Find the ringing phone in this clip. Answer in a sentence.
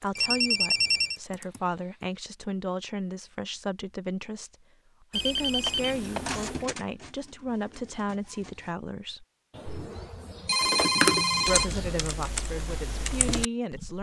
The ringing phone can be heard from 0.1 to 1.2 s, from 5.1 to 6.7 s and from 9.6 to 12.1 s.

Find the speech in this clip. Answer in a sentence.
You can hear the speech from 0.0 to 9.2 s and from 11.4 to 13.9 s.